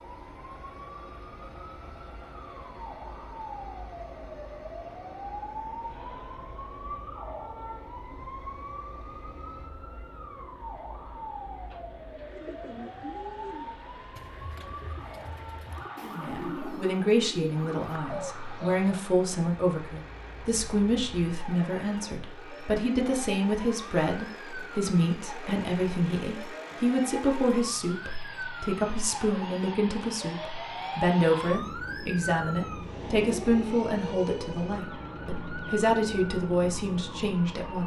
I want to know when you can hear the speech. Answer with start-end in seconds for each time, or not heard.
16.0-37.8.